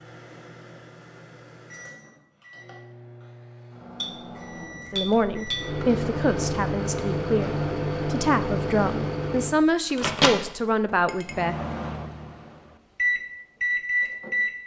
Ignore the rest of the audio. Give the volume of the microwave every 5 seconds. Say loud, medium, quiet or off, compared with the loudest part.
quiet, loud, loud.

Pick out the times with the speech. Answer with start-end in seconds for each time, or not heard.
4.9-11.6.